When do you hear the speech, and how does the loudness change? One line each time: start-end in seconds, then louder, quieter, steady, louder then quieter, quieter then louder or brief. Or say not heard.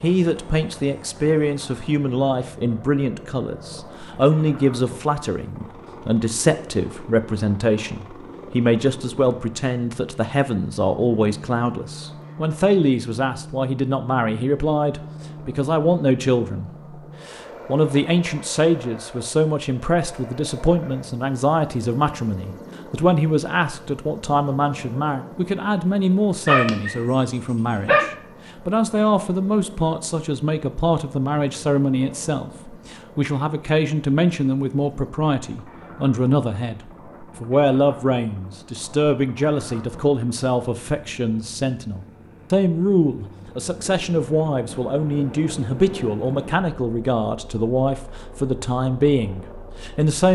0.0-50.3 steady.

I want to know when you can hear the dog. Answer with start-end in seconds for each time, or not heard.
26.4-28.1.